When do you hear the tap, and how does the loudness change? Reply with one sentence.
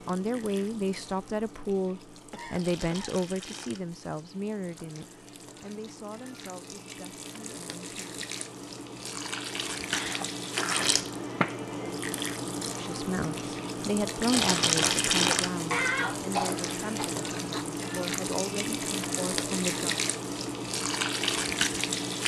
The tap can be heard from 0.0 to 22.2 s, getting louder.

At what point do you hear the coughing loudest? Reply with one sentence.
The volume of the coughing peaks at 16 seconds.